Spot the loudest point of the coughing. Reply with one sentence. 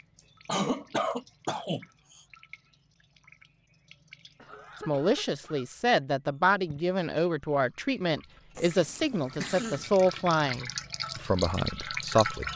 The loudest moment of the coughing is at 1 second.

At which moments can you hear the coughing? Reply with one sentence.
The coughing can be heard from 0.5 to 2.2 s, from 4.3 to 5.7 s and from 8.6 to 9.9 s.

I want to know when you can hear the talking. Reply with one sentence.
The talking can be heard from 4.8 to 12.5 s.